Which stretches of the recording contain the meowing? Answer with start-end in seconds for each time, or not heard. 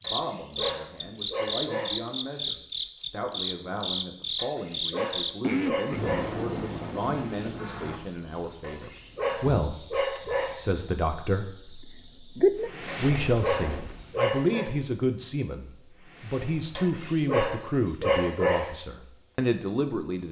not heard.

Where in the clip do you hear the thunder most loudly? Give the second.
6 s.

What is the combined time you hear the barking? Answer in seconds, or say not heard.
10 s.